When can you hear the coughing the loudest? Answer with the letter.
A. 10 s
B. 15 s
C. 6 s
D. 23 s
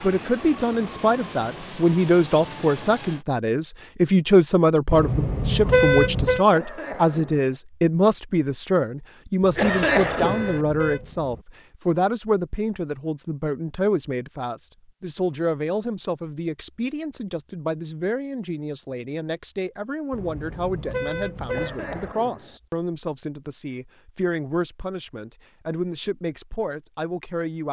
A.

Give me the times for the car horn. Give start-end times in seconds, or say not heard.
4.9-6.5, 9.4-11.4, 20.1-22.1.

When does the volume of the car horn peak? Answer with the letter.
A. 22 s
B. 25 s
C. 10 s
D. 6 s
D.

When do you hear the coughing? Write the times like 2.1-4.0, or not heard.
6.5-7.5, 9.6-10.7, 21.5-22.6.